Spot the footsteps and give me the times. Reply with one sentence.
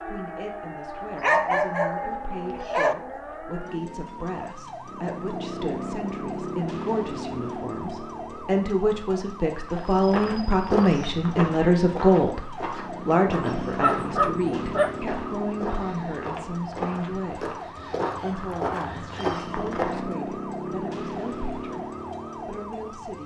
You can hear the footsteps from 9.7 to 20.0 s.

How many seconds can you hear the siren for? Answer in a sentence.
The siren can be heard for 23 seconds in total.